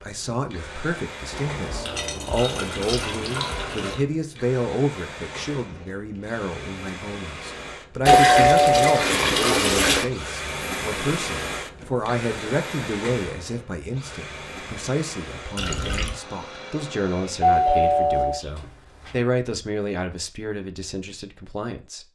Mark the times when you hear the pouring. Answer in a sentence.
You can hear the pouring from 1.3 to 4.0 s, from 8.1 to 10.1 s and from 15.6 to 16.2 s.